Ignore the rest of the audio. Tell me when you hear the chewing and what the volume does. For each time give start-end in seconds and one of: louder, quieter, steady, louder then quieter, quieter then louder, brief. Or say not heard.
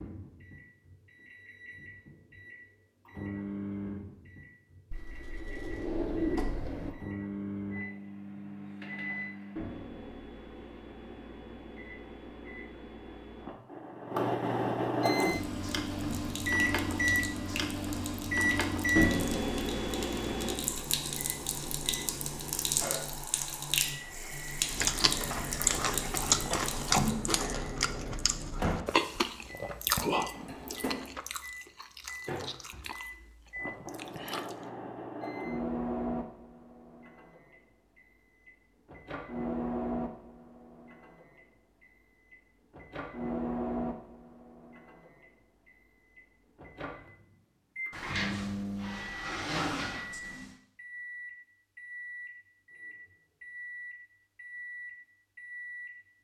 24.6-34.7 quieter.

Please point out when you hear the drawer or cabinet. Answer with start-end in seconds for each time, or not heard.
4.9-6.9, 30.3-31.2, 47.9-50.5.